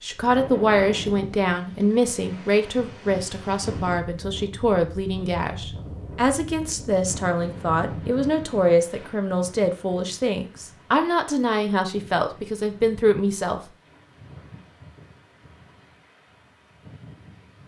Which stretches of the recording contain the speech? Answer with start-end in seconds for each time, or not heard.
0.0-13.6.